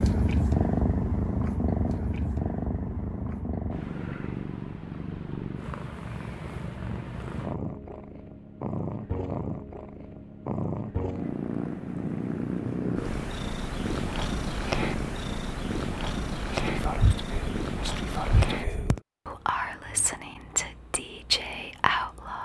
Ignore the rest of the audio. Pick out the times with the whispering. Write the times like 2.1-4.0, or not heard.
16.6-22.4.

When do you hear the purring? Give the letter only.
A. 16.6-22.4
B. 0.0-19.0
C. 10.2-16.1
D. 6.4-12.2
B.